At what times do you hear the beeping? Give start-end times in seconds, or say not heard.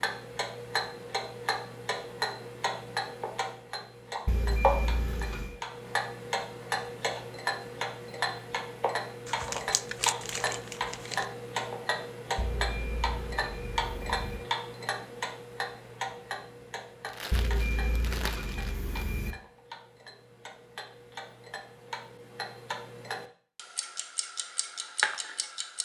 4.2-5.6, 12.3-14.4, 17.3-19.4.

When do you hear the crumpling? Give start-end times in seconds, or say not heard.
9.2-11.2, 17.1-19.1.